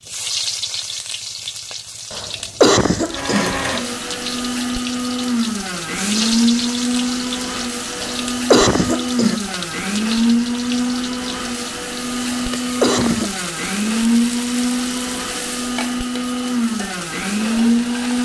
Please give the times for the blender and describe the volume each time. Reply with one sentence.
You can hear the blender from 3.1 to 18.2 s, at a steady volume.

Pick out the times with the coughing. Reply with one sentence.
The coughing can be heard from 2.1 to 3.9 s, from 8.0 to 9.3 s and from 12.3 to 13.3 s.